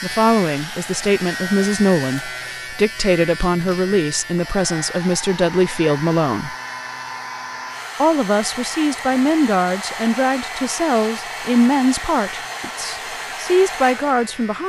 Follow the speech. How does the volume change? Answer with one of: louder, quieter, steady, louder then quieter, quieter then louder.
steady.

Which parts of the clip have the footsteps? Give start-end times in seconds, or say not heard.
not heard.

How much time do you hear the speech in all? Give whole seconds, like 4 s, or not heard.
13 s.